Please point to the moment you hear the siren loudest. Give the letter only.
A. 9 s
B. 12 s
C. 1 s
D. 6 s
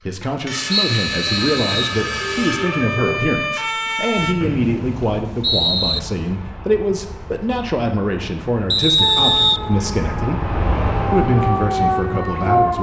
B.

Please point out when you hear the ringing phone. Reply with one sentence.
The ringing phone can be heard from 1.2 to 3.3 s.